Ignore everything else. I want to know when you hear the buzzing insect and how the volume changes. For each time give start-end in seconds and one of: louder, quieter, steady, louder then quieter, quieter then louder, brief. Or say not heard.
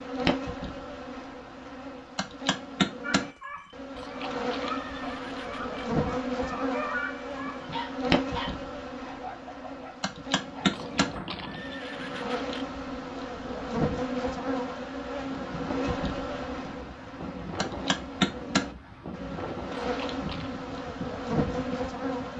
0.0-22.3 steady.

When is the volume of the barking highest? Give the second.
7 s.